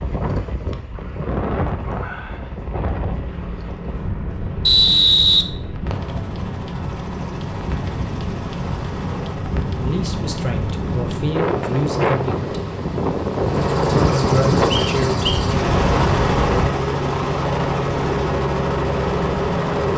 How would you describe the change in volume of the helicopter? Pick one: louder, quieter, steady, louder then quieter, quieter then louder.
louder.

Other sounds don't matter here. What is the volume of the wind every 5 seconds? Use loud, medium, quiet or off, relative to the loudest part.
medium, medium, loud, loud.